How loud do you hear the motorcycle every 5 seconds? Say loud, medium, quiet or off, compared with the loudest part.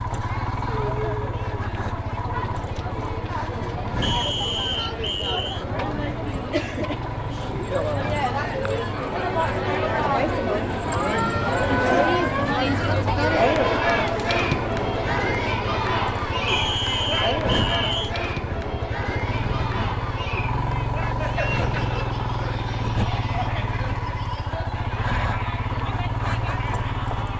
loud, medium, medium, loud, loud, loud.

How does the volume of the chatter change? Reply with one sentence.
The volume of the chatter goes up, then down.